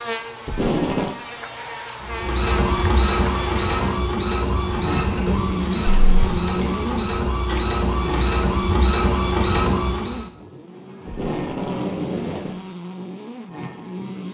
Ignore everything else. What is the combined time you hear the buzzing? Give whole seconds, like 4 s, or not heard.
14 s.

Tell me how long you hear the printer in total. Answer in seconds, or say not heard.
8 s.